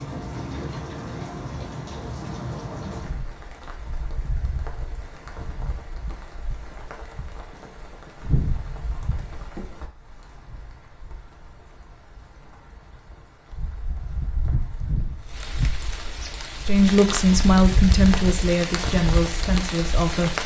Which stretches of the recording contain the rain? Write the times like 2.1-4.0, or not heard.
0.0-20.4.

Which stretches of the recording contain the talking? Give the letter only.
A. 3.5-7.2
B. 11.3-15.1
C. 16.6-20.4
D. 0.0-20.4
C.